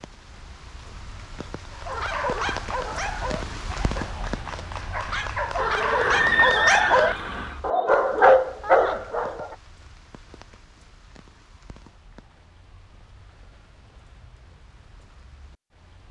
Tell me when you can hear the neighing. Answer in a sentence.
You can hear the neighing from 5.5 to 7.6 s.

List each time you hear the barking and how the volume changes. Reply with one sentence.
You can hear the barking from 1.8 to 9.6 s, getting quieter then louder.